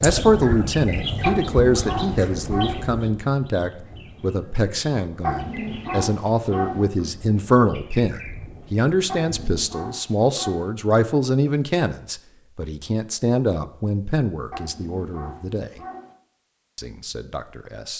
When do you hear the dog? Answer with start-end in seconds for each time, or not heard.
1.2-2.9, 5.2-6.8, 9.1-10.7, 14.5-16.1.